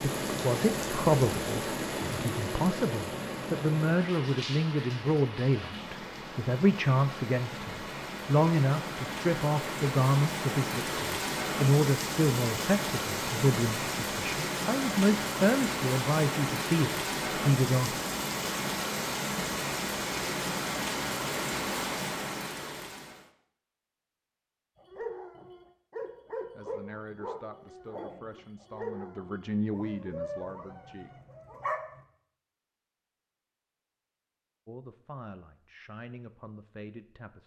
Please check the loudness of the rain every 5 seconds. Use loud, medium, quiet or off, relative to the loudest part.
loud, medium, loud, loud, loud, off, off, off.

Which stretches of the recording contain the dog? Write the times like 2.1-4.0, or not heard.
24.8-32.0.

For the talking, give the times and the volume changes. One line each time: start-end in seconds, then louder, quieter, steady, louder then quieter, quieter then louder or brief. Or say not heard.
0.0-18.0 steady
26.6-31.1 louder then quieter
34.6-37.4 brief.